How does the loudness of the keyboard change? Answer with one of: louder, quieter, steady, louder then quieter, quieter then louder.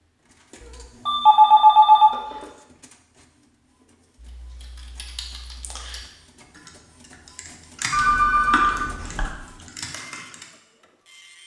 louder then quieter.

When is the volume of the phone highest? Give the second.
2 s.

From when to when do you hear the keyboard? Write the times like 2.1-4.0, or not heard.
4.2-10.4.